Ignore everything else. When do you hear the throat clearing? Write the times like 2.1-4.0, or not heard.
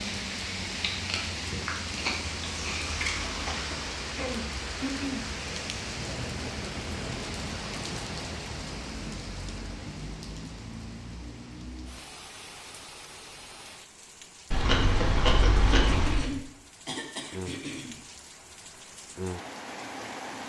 3.5-5.2, 15.7-18.0.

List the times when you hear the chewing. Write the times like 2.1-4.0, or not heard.
0.8-3.4, 14.5-16.3.